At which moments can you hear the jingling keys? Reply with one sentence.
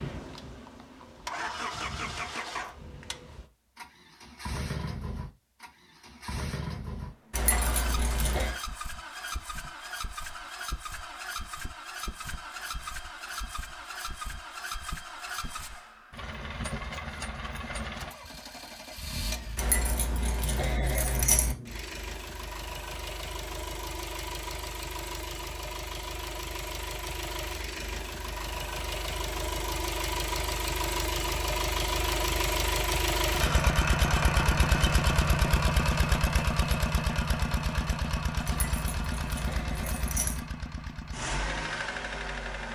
You can hear the jingling keys from 7.3 to 8.6 s, from 19.6 to 21.6 s and from 38.5 to 40.4 s.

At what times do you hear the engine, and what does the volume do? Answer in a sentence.
You can hear the engine from 0.0 to 42.7 s, getting louder.